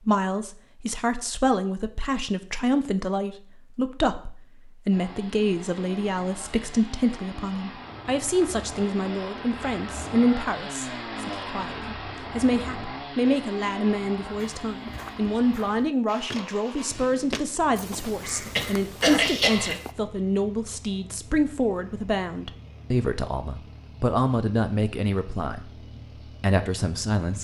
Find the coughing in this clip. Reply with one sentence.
You can hear the coughing from 18.2 to 19.8 s.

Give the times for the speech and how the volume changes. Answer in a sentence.
You can hear the speech from 0.1 to 25.6 s, at a steady volume; and briefly from 26.4 to 27.3 s.